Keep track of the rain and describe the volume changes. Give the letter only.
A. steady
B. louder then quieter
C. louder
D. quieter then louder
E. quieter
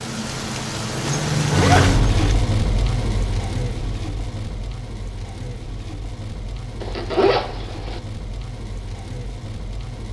E.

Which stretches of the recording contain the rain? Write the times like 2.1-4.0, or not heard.
0.0-10.0.